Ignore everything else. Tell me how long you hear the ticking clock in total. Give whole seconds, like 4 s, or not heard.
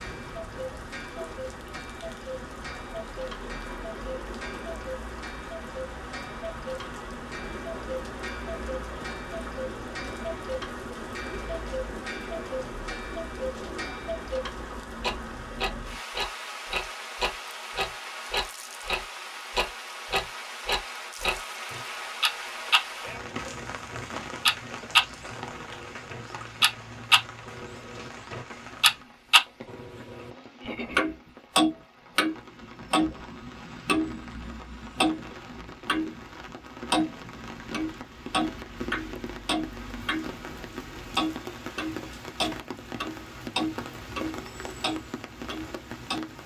45 s.